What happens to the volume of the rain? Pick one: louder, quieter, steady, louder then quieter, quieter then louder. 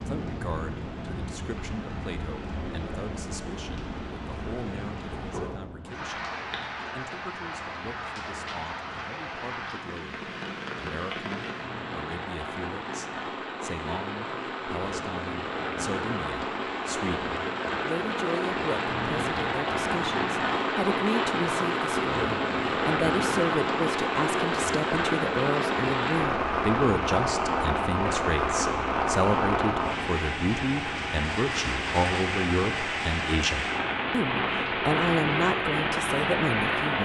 louder.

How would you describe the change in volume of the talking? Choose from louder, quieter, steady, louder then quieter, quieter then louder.
louder.